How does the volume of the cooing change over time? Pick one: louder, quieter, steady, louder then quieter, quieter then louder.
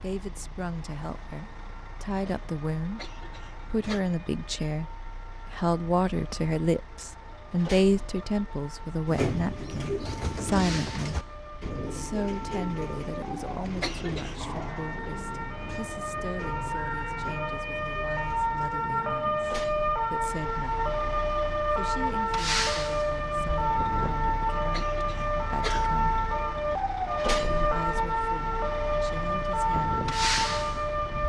quieter.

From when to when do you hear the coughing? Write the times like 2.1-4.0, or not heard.
3.0-4.0, 13.8-14.4, 24.7-25.9.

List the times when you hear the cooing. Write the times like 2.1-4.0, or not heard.
9.1-18.9.